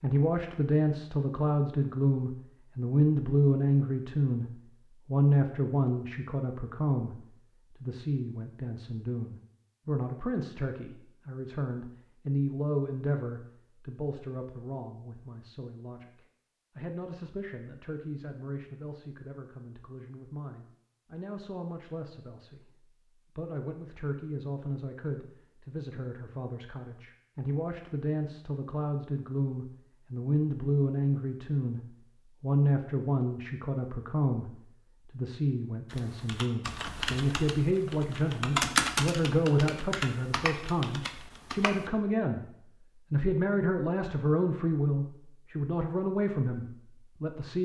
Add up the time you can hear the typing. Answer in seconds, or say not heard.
6 s.